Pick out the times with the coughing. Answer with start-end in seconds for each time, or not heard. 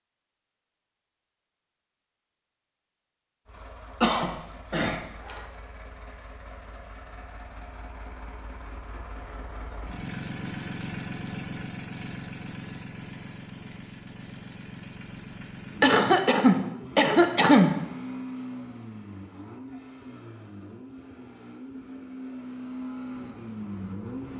4.0-5.4, 15.8-17.7.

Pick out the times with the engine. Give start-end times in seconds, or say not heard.
3.5-24.3.